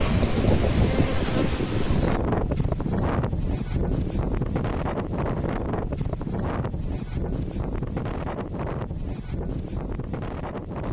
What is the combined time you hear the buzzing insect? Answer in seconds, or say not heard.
2 s.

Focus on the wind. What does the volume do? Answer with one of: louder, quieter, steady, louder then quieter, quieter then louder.
quieter.